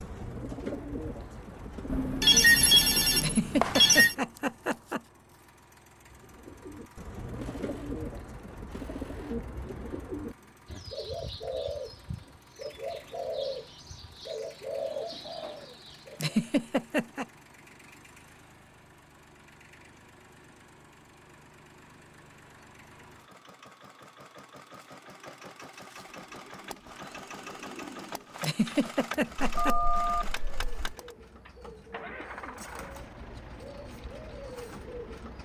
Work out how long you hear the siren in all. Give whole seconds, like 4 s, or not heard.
not heard.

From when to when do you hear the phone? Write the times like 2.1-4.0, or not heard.
1.9-4.2, 29.4-30.9.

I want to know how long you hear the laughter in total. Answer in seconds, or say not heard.
4 s.